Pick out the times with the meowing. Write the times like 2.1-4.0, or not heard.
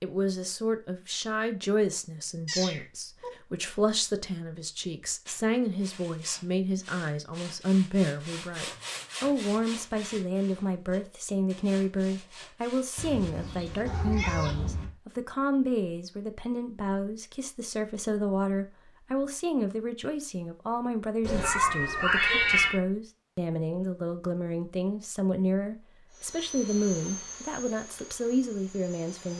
2.5-3.3, 12.9-14.8, 21.2-22.8.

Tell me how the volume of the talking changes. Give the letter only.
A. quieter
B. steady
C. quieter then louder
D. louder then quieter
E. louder
B.